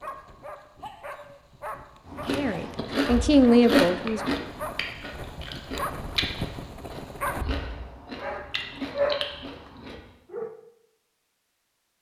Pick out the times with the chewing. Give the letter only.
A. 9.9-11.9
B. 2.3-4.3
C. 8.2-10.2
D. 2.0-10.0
D.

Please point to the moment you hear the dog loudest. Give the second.
9 s.